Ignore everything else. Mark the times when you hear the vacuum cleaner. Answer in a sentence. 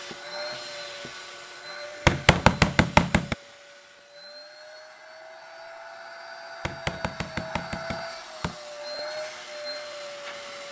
The vacuum cleaner can be heard from 0.0 to 10.6 s.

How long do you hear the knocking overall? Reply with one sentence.
The knocking can be heard for 3 seconds in total.